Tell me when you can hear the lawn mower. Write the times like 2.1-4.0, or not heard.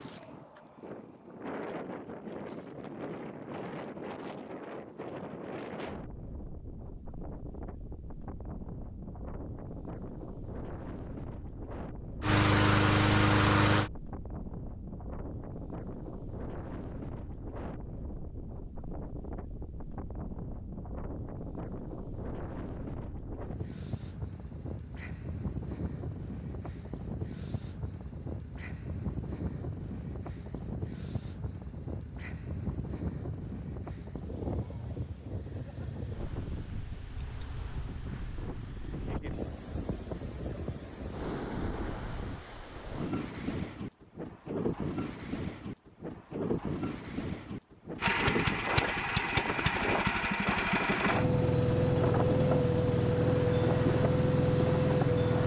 12.2-13.9, 48.0-55.4.